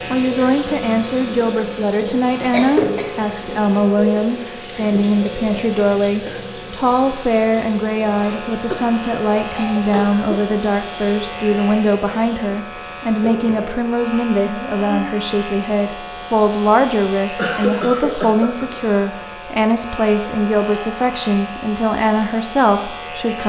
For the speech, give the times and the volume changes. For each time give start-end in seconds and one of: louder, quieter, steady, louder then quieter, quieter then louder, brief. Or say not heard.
0.1-23.4 steady.